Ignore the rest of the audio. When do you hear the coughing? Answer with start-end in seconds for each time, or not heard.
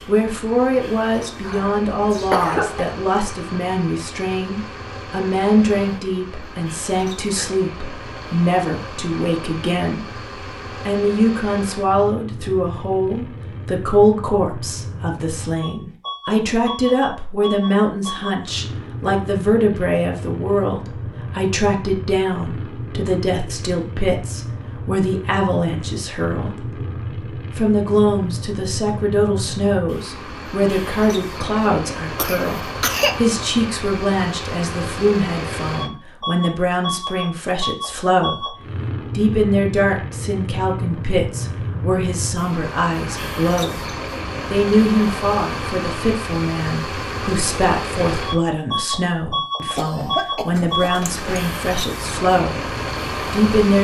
1.4-2.9, 32.1-33.3, 49.8-51.4.